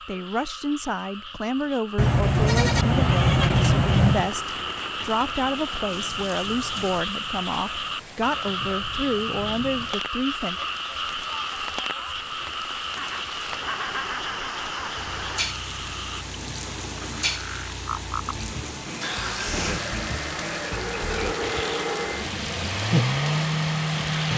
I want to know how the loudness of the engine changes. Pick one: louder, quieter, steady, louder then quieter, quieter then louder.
louder.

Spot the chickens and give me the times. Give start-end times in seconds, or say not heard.
not heard.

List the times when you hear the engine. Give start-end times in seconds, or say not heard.
14.9-24.3.